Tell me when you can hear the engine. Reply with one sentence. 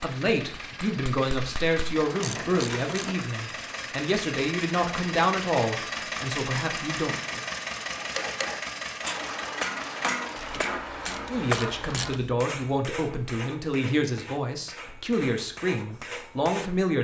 You can hear the engine from 0.0 to 10.6 s.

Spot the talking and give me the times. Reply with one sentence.
You can hear the talking from 0.0 to 7.2 s and from 11.3 to 16.9 s.